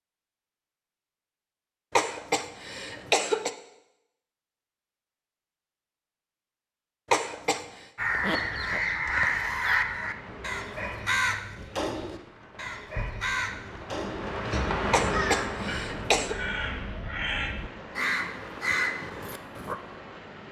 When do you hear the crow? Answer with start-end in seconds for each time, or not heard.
8.0-19.8.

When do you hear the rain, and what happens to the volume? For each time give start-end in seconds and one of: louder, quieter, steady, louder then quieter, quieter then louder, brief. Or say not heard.
10.1-20.4 louder then quieter.